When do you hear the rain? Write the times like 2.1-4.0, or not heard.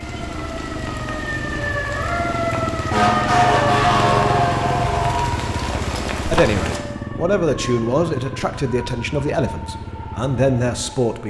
0.0-6.8.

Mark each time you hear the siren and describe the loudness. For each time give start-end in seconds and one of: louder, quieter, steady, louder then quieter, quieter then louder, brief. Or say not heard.
0.0-11.2 louder then quieter.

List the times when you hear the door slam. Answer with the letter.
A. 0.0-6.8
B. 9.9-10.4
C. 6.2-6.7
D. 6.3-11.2
C.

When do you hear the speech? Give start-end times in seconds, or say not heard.
6.3-11.2.